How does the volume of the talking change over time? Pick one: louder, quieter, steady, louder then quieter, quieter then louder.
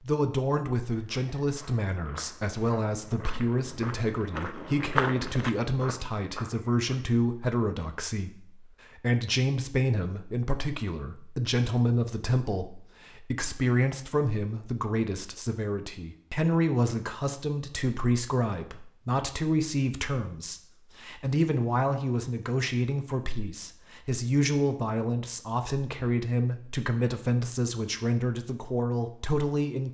steady.